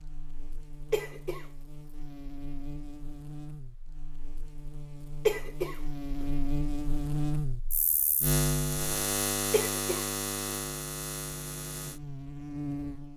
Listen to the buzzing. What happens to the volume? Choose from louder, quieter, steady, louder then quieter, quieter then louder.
louder then quieter.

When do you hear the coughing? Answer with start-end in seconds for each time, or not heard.
0.9-1.4, 5.2-6.2, 9.5-10.1.